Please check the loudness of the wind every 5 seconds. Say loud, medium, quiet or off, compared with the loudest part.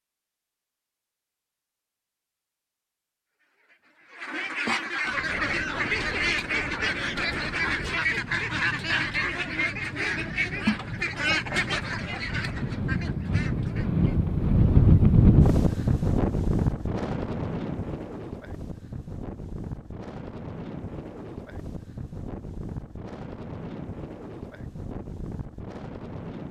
off, quiet, loud, loud, quiet, quiet.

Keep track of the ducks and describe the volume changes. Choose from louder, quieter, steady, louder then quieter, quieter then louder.
quieter.